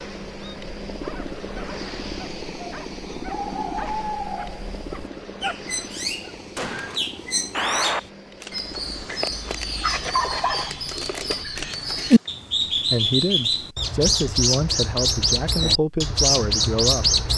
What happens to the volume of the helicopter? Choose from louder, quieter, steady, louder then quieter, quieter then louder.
quieter.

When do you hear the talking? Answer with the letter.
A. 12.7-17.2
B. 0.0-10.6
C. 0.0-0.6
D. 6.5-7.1
A.